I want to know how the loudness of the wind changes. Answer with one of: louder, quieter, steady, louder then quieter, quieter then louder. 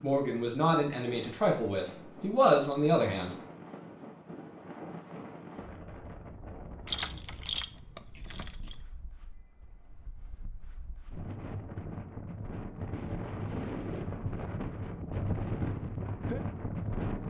quieter then louder.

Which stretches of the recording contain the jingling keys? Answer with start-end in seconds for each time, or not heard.
6.8-8.8.